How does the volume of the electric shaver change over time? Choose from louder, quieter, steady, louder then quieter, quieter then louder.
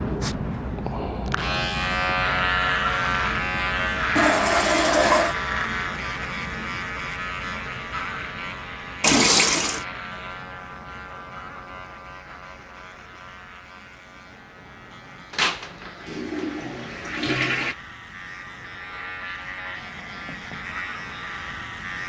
quieter then louder.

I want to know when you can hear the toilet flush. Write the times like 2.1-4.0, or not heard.
4.2-5.3, 9.0-9.8, 15.3-17.8.